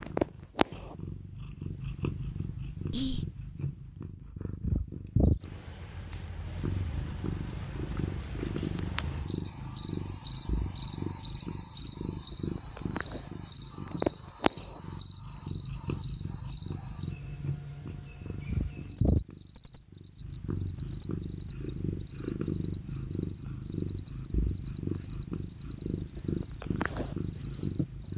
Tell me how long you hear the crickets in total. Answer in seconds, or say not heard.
23 s.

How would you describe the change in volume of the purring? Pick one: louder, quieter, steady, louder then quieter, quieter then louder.
steady.